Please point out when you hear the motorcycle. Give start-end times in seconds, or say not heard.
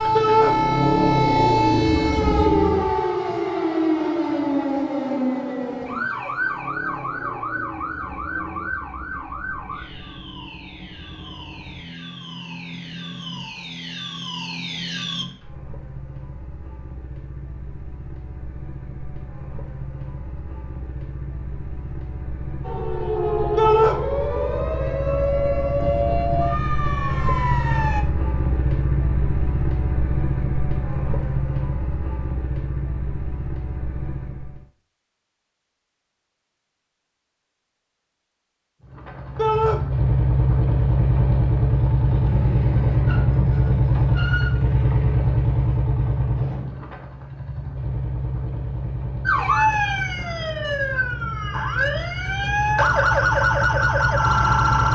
0.0-3.0, 5.8-34.6, 38.9-54.8.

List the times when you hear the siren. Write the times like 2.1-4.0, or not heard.
0.0-15.2, 22.6-28.1, 49.2-54.8.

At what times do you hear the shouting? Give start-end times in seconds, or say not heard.
0.1-0.6, 23.6-24.0, 39.4-39.8.